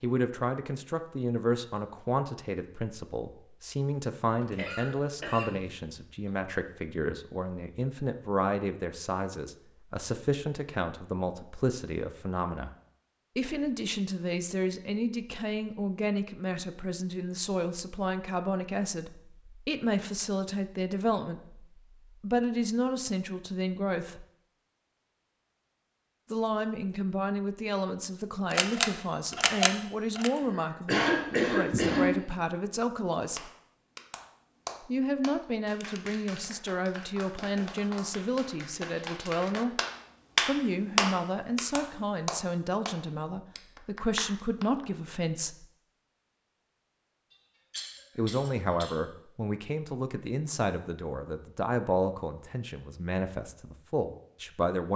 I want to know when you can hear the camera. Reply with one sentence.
The camera can be heard from 28.5 to 30.3 s.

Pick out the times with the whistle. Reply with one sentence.
You can't hear the whistle here.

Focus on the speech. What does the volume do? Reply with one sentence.
The volume of the speech stays about the same.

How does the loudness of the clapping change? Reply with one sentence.
The volume of the clapping goes up, then down.